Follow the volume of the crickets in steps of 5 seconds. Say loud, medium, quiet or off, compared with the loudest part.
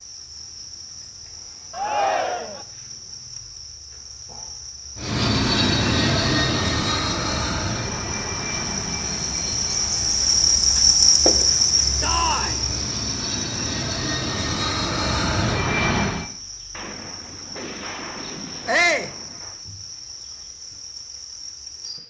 quiet, medium, loud, quiet, quiet.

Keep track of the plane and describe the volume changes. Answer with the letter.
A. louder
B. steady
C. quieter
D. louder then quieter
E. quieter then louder
E.